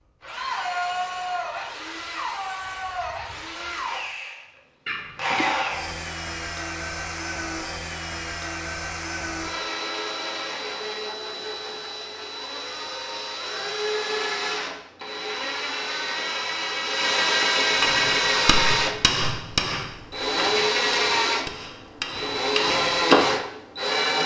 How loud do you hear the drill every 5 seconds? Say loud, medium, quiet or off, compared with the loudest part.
medium, medium, medium, loud, loud.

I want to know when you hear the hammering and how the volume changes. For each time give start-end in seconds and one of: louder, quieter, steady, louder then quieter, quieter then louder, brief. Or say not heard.
17.8-23.4 quieter then louder.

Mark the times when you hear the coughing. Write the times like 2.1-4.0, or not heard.
4.8-5.8.